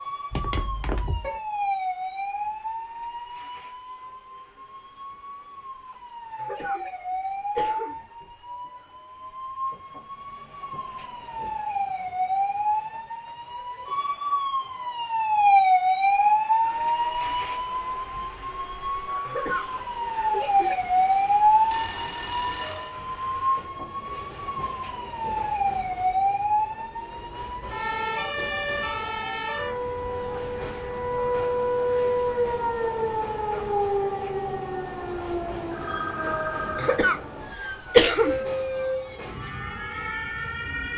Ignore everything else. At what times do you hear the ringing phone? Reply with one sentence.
You can hear the ringing phone from 0.3 to 1.4 s, from 21.7 to 22.9 s and from 35.7 to 37.0 s.